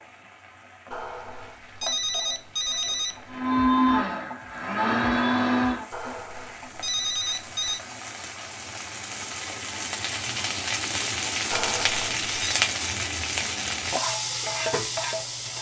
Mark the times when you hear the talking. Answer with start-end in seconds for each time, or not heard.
not heard.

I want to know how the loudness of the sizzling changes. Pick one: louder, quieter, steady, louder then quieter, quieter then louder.
louder.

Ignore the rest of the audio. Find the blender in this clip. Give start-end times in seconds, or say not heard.
3.2-5.8.